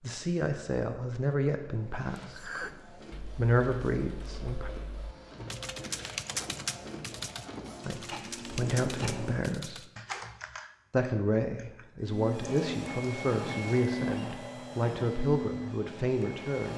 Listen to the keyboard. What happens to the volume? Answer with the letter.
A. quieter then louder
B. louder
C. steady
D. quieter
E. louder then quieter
E.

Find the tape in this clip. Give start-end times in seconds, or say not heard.
8.5-9.4.